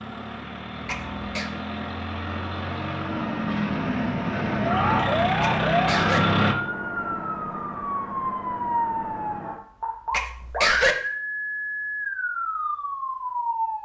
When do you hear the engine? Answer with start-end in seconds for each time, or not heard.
0.0-6.5.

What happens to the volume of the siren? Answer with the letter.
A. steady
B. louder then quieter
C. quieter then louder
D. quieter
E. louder
A.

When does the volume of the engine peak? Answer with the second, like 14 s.
6 s.